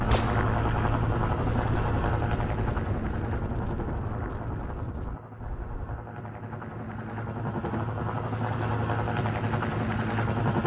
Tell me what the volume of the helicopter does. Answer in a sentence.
The volume of the helicopter goes down, then up.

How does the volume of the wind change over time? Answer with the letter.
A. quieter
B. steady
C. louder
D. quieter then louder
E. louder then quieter
A.